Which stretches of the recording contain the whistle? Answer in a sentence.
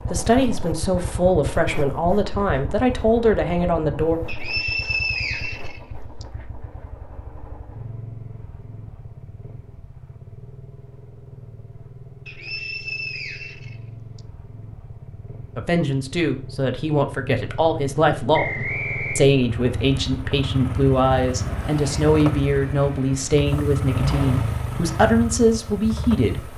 You can hear the whistle from 4.2 to 6.2 s, from 12.2 to 14.2 s and from 18.3 to 19.2 s.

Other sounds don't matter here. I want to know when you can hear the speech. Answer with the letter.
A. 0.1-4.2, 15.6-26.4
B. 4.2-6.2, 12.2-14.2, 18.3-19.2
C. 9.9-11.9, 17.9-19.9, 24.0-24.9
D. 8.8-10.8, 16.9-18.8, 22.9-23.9
A.